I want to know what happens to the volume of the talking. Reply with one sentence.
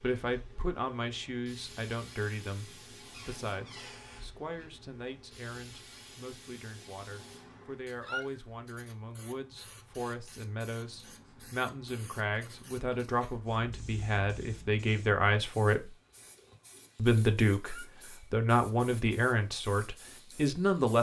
The loudness of the talking goes down, then up.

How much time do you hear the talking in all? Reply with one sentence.
You can hear the talking for 20 seconds altogether.